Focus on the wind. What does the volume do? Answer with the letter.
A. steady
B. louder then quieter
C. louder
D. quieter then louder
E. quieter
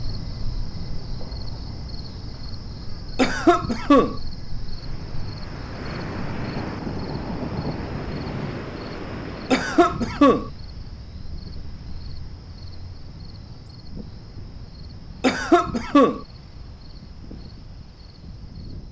E.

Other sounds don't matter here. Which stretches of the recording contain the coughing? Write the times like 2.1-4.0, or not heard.
3.1-4.2, 9.5-10.5, 15.2-16.2.